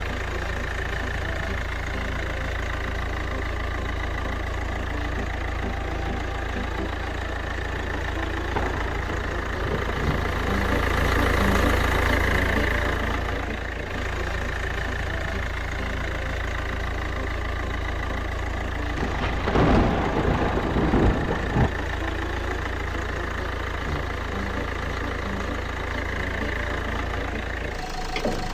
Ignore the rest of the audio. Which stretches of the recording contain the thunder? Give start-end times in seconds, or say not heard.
8.6-10.6, 18.9-21.7.